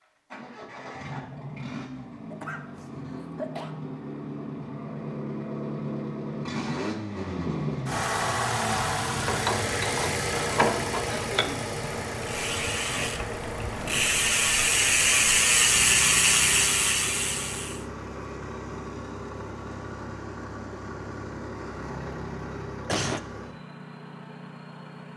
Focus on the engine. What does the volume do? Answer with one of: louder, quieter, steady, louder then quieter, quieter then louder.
louder then quieter.